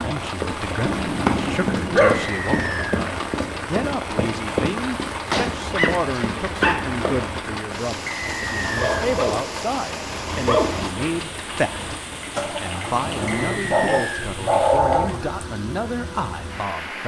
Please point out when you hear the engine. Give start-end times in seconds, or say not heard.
0.0-13.6.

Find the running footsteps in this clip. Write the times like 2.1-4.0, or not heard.
0.3-7.2.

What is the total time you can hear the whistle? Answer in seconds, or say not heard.
3 s.